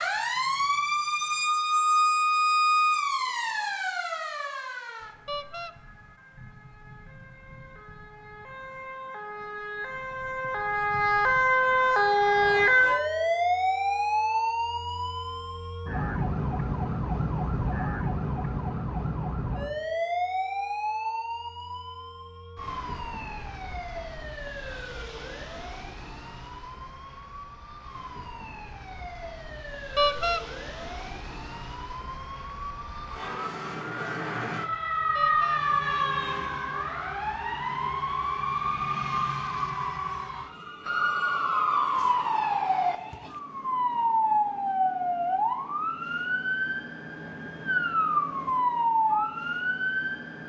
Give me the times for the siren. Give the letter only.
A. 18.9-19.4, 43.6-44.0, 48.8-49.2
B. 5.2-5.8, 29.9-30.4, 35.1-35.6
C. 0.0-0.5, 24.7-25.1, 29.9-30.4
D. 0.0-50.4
D.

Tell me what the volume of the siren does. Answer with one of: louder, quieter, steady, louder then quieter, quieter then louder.
quieter then louder.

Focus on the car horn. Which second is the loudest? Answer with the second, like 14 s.
30 s.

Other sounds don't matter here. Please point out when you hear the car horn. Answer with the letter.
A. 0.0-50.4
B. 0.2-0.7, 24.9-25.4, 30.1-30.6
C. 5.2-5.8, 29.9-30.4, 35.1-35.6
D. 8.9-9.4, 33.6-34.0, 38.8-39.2
C.